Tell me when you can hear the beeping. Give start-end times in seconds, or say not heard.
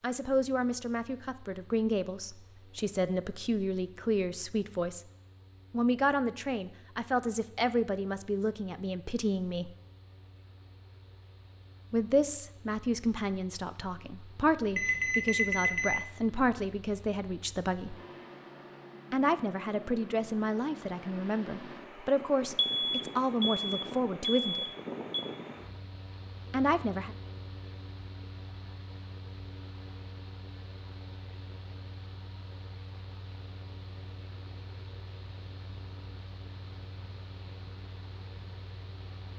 14.8-15.9, 22.6-25.2.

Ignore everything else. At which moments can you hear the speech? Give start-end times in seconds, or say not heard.
0.0-5.0, 5.7-9.7, 11.9-17.9, 19.1-24.6, 26.5-27.1.